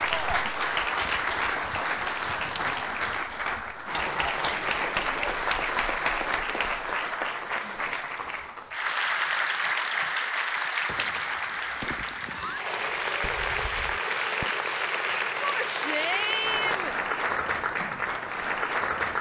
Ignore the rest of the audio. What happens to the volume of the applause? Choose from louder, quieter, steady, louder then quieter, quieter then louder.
steady.